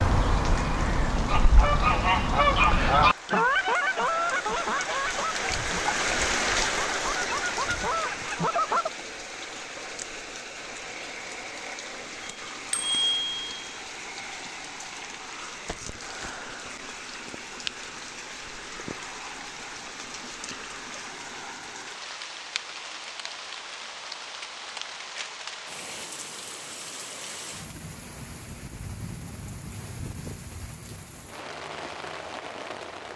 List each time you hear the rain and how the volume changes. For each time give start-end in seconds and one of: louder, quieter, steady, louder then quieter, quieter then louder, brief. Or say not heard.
0.0-33.1 quieter.